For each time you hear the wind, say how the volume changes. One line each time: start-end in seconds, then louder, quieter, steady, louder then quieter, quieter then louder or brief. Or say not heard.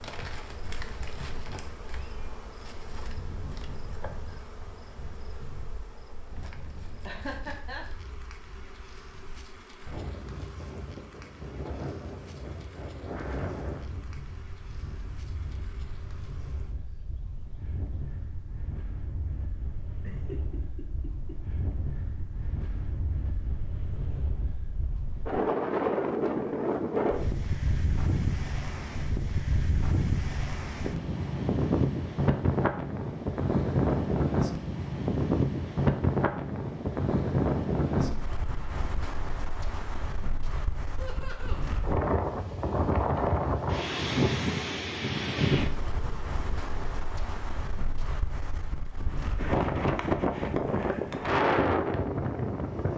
0.1-52.9 louder.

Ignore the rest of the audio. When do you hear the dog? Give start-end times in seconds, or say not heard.
not heard.